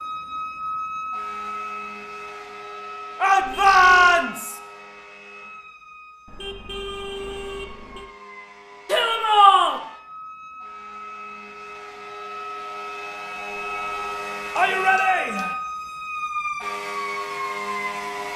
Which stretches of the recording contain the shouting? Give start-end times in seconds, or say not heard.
3.2-4.5, 8.8-9.8, 14.6-15.6.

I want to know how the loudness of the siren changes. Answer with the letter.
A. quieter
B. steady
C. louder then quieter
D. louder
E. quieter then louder
E.